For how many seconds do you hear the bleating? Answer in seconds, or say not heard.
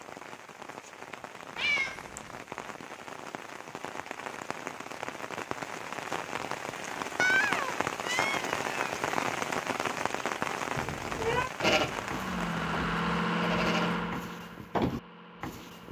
4 s.